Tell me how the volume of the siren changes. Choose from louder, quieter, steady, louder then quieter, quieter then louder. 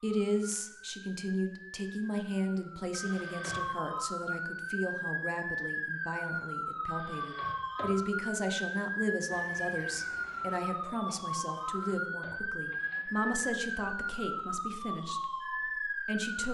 louder.